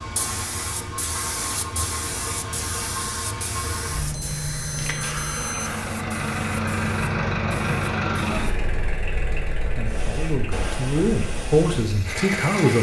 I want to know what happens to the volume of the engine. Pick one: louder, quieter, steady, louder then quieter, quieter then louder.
louder then quieter.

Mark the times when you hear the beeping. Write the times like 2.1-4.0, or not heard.
4.0-6.0.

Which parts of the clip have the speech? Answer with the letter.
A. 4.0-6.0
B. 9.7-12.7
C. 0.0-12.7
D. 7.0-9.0
B.